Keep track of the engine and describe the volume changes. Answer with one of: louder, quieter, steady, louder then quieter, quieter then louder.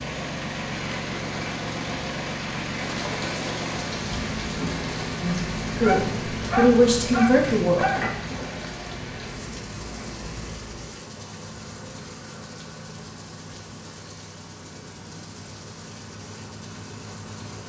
quieter.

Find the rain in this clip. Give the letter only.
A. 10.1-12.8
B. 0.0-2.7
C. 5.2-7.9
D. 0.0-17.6
D.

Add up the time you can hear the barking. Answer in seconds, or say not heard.
2 s.